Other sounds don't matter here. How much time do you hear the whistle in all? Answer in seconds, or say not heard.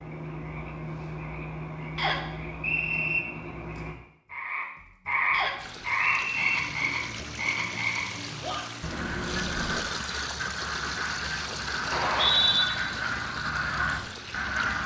3 s.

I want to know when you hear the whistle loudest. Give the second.
12 s.